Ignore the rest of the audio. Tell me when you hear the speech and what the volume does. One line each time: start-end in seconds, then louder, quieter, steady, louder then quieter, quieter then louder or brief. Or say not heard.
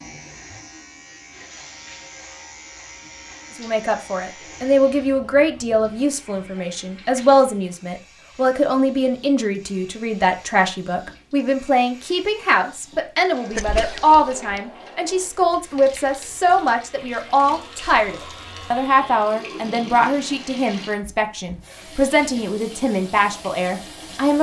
3.5-24.3 steady.